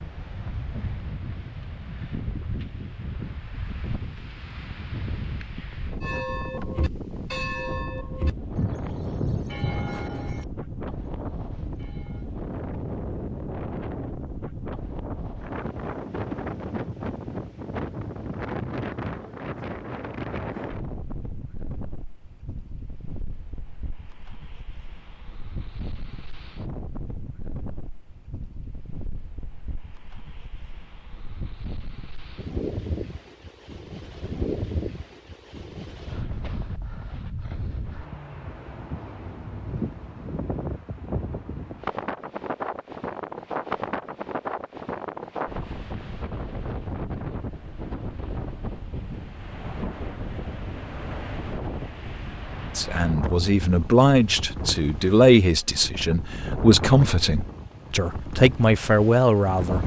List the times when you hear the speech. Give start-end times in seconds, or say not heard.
52.8-59.8.